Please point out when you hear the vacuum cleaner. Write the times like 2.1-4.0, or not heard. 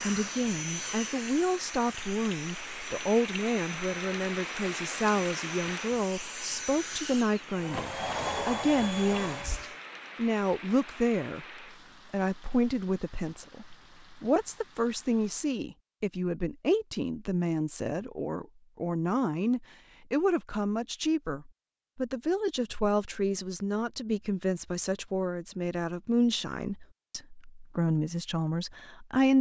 0.0-9.8.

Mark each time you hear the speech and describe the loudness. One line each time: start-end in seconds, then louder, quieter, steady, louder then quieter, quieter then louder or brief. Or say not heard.
0.0-11.4 steady
12.1-29.3 steady.